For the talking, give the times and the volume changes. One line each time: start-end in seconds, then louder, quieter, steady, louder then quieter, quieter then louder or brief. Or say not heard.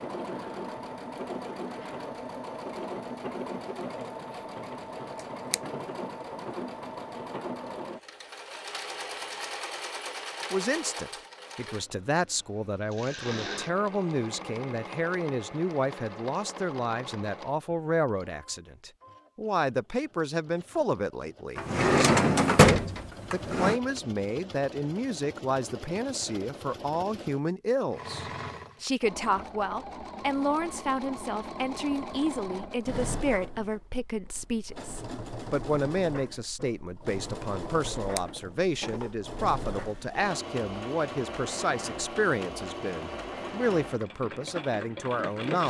10.5-45.6 steady.